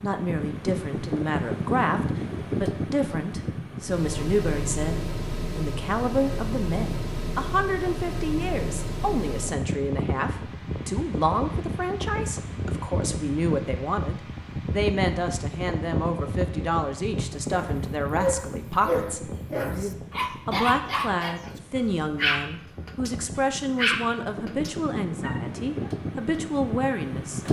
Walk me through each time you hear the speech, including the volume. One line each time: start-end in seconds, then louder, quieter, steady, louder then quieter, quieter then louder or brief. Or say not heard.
0.0-27.4 steady.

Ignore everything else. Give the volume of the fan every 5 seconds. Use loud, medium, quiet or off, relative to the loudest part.
loud, loud, loud, loud, medium, loud.